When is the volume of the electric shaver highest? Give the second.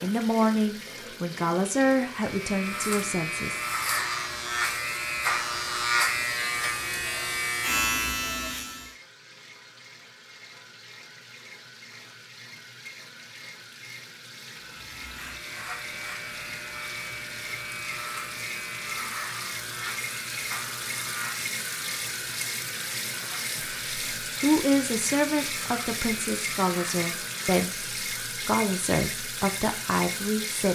6 s.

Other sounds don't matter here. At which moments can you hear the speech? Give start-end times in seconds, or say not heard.
0.0-3.6, 23.6-30.7.